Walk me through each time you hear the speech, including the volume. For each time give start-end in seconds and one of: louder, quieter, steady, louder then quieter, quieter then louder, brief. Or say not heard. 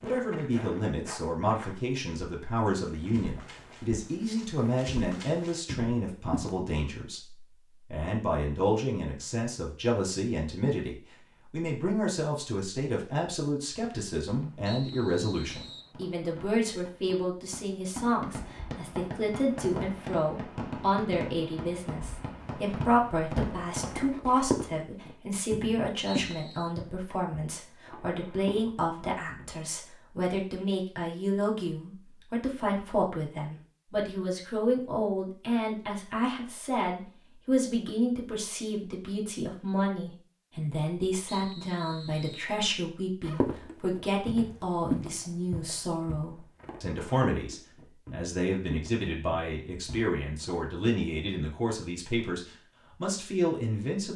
0.0-54.1 steady.